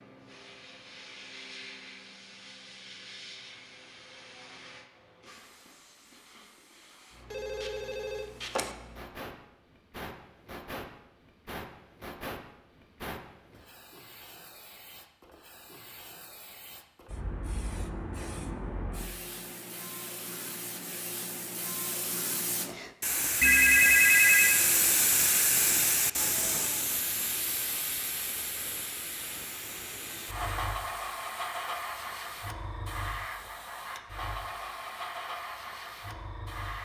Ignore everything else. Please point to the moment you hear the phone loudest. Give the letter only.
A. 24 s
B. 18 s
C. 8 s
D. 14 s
A.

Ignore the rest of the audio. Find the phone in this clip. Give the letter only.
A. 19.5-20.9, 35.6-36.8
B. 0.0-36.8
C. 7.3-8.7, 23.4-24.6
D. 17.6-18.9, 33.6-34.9
C.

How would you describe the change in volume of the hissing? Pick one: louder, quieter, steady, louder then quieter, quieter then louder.
louder then quieter.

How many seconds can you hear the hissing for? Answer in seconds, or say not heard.
37 s.